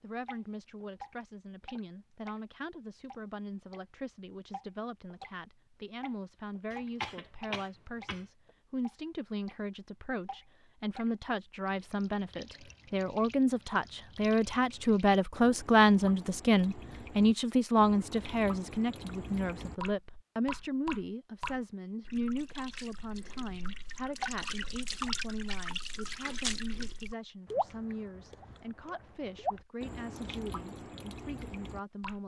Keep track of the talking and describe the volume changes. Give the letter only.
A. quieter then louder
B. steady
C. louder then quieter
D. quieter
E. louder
C.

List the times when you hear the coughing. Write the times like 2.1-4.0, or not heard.
6.7-8.2.